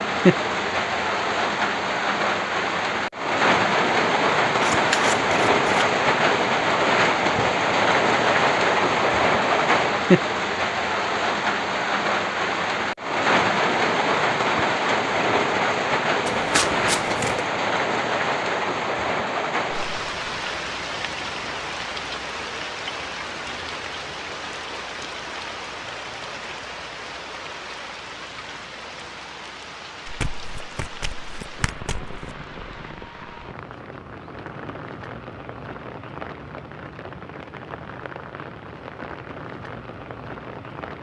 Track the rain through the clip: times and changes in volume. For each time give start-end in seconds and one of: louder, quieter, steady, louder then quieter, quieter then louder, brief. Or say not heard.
0.0-40.9 quieter.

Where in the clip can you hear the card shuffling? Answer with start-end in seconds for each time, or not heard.
4.6-5.7, 16.2-17.4, 30.1-32.4.